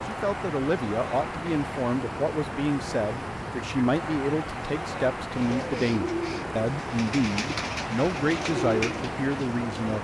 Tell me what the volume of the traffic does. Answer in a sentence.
The volume of the traffic stays about the same.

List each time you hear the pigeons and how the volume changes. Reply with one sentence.
You can hear the pigeons from 5.3 to 9.9 s, getting quieter then louder.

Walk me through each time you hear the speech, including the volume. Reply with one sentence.
You can hear the speech from 0.1 to 9.9 s, at a steady volume.